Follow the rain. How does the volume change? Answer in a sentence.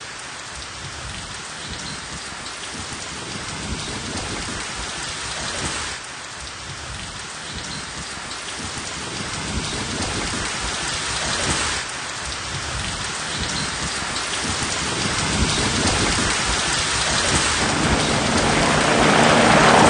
The volume of the rain goes up.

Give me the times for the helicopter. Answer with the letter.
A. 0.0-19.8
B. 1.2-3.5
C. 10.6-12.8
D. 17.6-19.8
D.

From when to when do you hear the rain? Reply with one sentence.
You can hear the rain from 0.0 to 19.8 s.